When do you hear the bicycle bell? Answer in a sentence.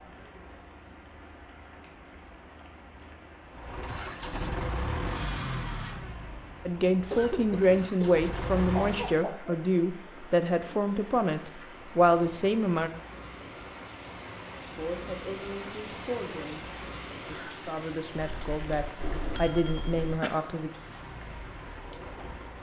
The bicycle bell can be heard from 18.1 to 20.1 s.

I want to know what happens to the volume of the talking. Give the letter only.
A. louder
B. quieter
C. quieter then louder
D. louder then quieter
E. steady
C.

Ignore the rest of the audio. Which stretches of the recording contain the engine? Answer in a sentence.
You can hear the engine from 3.5 to 9.2 s and from 20.7 to 22.5 s.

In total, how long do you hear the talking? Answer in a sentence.
You can hear the talking for 12 seconds altogether.